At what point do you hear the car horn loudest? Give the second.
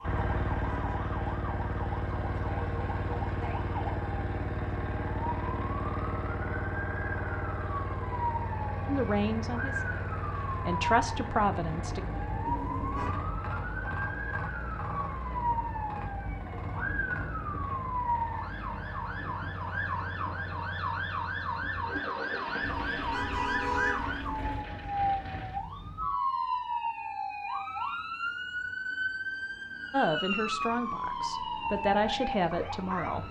24 s.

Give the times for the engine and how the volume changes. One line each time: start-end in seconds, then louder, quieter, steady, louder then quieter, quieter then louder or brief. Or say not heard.
0.0-25.6 quieter.